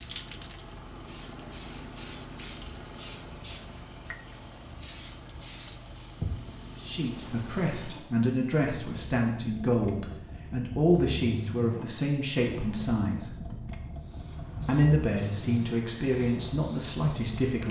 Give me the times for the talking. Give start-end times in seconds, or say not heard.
6.8-13.4, 14.7-17.6.